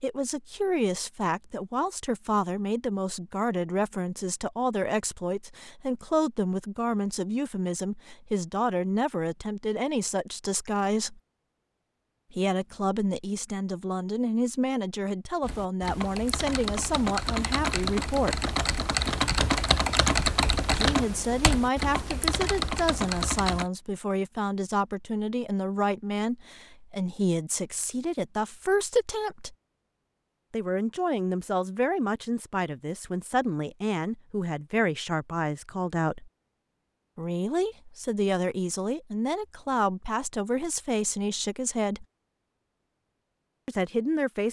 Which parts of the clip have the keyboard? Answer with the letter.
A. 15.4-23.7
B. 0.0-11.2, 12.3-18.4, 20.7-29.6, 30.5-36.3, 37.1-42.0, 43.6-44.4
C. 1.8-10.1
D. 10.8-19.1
A.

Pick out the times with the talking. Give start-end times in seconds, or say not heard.
0.0-11.2, 12.3-18.4, 20.7-29.6, 30.5-36.3, 37.1-42.0, 43.6-44.4.